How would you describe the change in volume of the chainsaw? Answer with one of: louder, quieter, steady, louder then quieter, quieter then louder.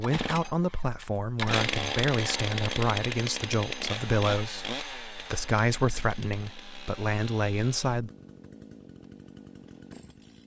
quieter.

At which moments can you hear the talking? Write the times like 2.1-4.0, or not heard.
0.0-8.1.